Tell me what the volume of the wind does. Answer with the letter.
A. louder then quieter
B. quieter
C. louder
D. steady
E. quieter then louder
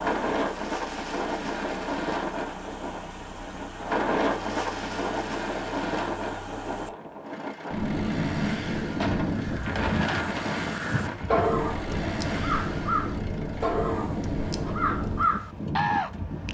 D.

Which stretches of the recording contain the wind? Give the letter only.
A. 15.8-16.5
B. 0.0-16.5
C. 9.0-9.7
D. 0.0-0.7
B.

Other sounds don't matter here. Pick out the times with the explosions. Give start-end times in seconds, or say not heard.
9.0-9.7.